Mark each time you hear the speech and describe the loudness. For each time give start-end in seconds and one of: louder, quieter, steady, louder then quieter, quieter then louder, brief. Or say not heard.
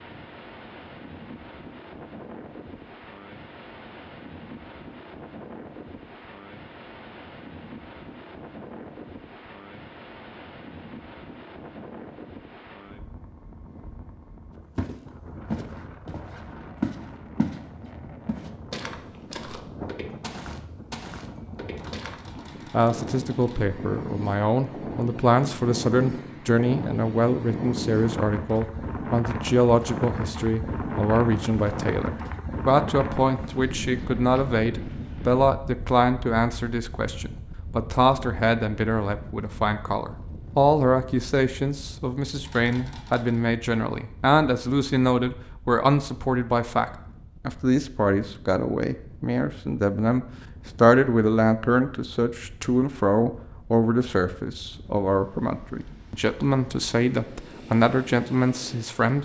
22.7-59.2 steady.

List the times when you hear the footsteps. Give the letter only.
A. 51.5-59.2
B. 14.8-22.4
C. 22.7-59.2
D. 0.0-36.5
B.